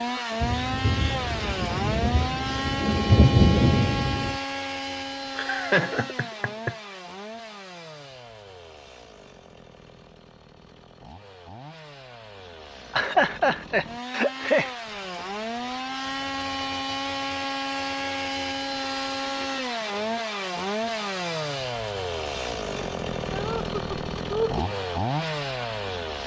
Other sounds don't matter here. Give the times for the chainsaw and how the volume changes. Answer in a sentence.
The chainsaw can be heard from 0.0 to 26.2 s, getting quieter then louder.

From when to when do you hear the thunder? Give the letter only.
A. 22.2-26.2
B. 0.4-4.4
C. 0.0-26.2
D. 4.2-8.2
B.